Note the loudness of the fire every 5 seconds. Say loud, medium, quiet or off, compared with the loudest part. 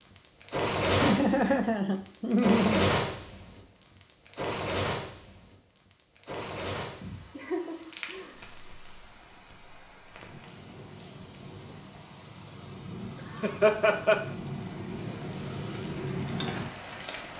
loud, quiet, quiet, medium.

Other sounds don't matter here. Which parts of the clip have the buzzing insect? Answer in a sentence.
You can't hear the buzzing insect here.